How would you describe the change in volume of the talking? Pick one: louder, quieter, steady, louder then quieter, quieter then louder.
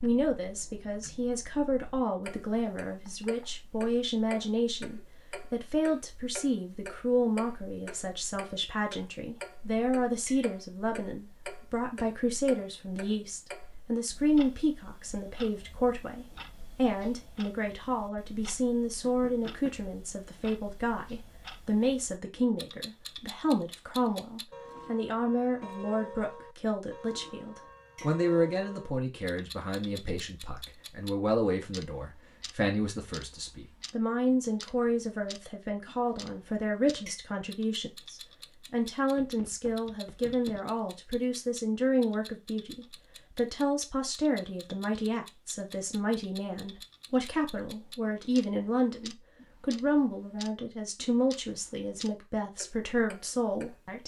steady.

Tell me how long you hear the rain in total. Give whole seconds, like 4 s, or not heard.
not heard.